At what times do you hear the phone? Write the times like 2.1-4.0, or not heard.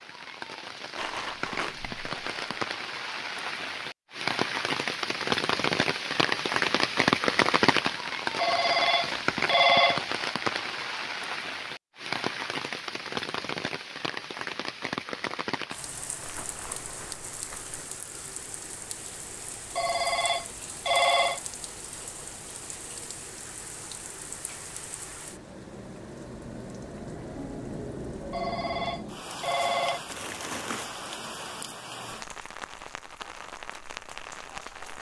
8.3-10.0, 19.8-21.4, 28.3-30.0.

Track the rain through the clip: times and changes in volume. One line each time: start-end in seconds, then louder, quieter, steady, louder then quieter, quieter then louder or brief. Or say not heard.
0.0-34.9 quieter.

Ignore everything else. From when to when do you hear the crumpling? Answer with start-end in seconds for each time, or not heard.
0.9-2.7, 16.2-17.8, 30.1-30.9.